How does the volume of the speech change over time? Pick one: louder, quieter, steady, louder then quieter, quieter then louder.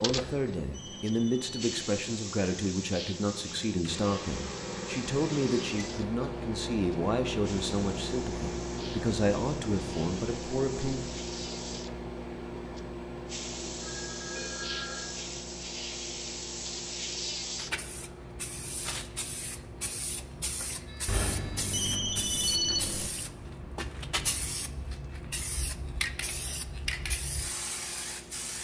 steady.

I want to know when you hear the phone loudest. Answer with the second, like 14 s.
23 s.